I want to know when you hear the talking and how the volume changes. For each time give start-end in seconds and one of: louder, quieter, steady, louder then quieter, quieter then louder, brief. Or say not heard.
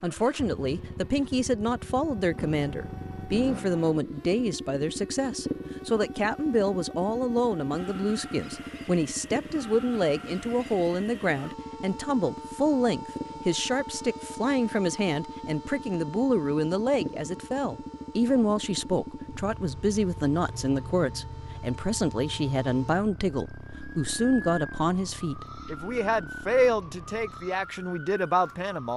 0.0-28.9 steady.